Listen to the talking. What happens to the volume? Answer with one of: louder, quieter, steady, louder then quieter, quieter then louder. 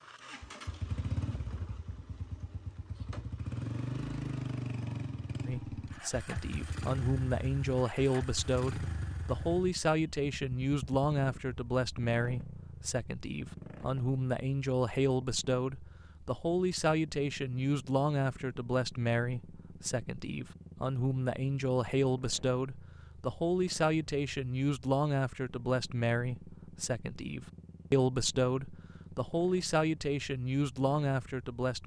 steady.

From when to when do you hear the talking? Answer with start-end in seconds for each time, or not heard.
5.5-31.8.